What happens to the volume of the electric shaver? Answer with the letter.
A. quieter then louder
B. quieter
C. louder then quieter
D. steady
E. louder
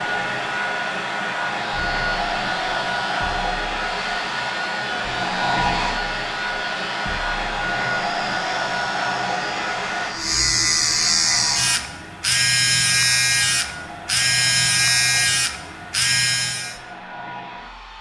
E.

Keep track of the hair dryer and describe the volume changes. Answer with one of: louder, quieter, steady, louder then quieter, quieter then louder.
quieter.